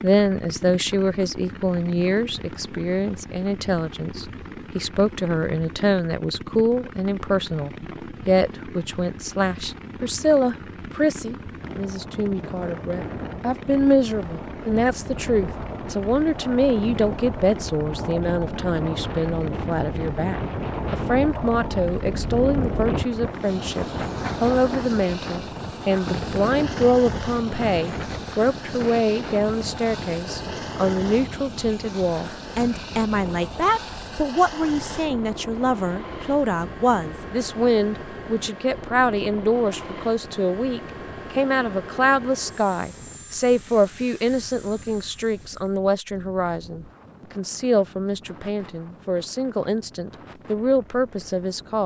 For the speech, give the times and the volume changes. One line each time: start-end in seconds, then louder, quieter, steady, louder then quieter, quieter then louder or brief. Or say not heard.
0.0-51.8 steady.